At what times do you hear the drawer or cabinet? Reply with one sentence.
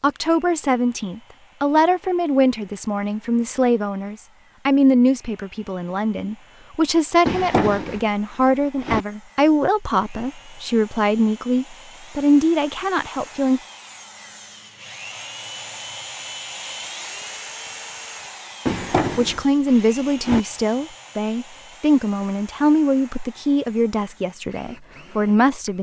You can hear the drawer or cabinet from 7.2 to 9.1 s and from 18.6 to 20.4 s.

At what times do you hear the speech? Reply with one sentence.
You can hear the speech from 0.0 to 13.6 s and from 19.1 to 25.7 s.